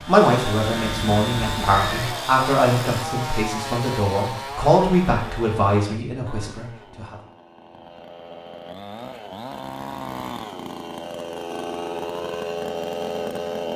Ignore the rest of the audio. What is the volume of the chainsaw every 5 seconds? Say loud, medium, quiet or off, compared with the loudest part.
loud, medium, loud.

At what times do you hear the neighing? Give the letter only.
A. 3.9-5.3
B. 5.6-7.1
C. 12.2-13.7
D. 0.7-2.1
D.